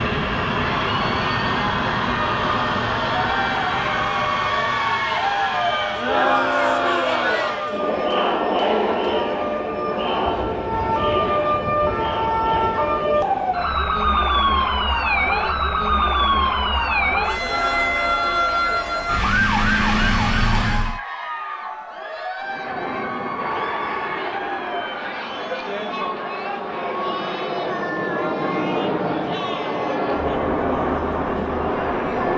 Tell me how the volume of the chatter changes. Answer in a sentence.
The volume of the chatter goes down.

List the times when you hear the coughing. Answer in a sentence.
You can't hear the coughing here.